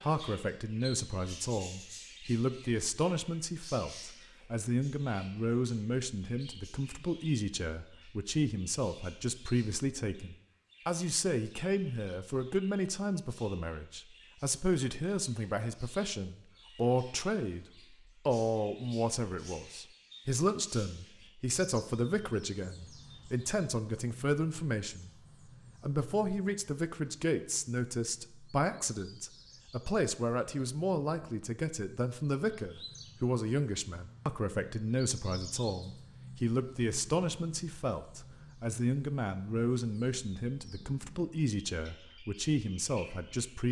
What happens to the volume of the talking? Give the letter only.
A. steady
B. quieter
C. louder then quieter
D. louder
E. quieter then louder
A.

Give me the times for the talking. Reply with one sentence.
You can hear the talking from 0.0 to 17.6 s, from 18.2 to 25.1 s and from 25.8 to 43.6 s.